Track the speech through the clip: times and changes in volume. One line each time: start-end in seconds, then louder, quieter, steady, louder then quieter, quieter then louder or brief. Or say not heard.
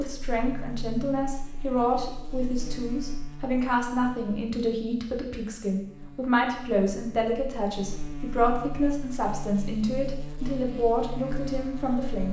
0.0-12.2 steady.